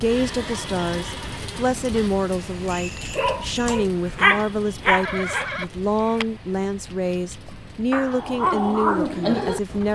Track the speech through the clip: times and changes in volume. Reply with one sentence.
The speech can be heard from 0.0 to 9.9 s, at a steady volume.